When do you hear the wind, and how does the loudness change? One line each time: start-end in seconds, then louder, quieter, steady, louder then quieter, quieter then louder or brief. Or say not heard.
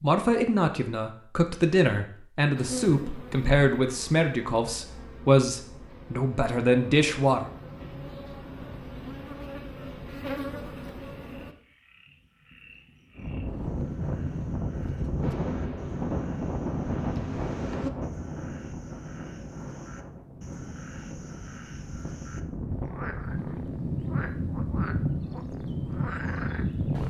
13.2-27.0 quieter then louder.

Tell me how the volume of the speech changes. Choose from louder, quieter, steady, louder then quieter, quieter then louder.
steady.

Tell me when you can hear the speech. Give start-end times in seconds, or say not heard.
0.0-7.5.